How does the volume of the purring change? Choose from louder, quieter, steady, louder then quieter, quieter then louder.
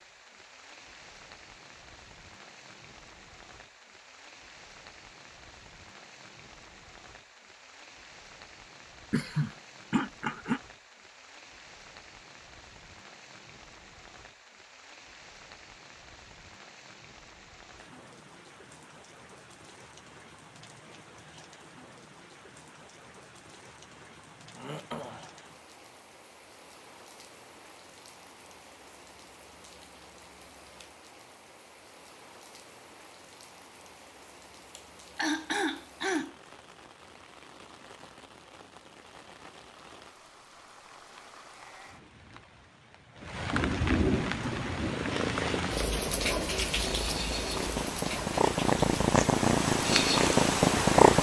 louder.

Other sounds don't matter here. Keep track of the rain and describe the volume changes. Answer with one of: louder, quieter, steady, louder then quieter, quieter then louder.
louder.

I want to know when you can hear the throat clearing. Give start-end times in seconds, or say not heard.
9.1-10.6, 24.5-25.4, 34.8-36.4.